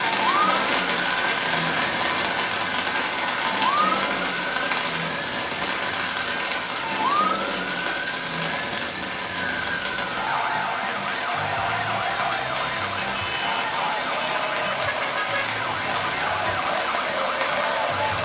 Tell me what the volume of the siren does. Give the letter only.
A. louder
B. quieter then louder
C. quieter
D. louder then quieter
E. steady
E.